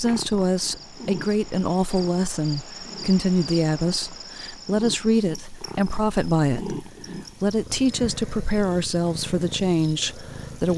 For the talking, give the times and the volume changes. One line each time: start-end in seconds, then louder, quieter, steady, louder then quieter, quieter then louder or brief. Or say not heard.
0.0-10.7 steady.